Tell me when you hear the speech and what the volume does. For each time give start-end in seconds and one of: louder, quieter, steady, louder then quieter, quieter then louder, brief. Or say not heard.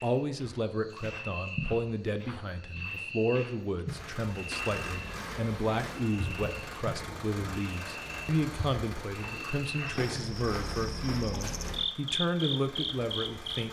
0.0-13.6 steady.